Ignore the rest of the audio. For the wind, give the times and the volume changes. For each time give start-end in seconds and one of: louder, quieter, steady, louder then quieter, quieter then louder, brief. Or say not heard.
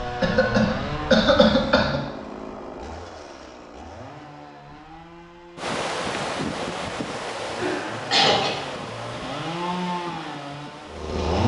5.5-11.2 quieter.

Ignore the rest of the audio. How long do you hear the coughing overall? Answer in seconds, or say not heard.
3 s.